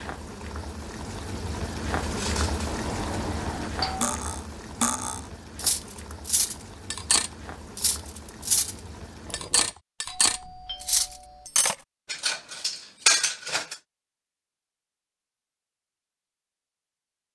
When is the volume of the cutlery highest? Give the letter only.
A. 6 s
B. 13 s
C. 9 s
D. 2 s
B.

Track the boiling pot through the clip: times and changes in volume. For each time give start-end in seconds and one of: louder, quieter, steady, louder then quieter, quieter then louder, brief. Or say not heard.
0.0-9.8 quieter.